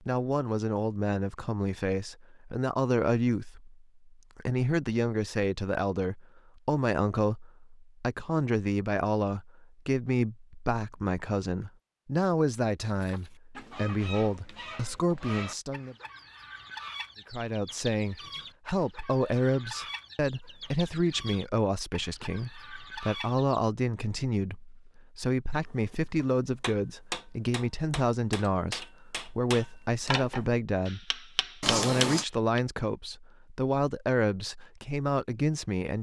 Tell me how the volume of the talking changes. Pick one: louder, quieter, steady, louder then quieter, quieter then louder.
steady.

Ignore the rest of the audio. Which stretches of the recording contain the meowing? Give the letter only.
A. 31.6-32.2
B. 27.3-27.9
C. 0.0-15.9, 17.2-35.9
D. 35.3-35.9
A.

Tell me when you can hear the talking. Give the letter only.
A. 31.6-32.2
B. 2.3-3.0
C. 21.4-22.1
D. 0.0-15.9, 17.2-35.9
D.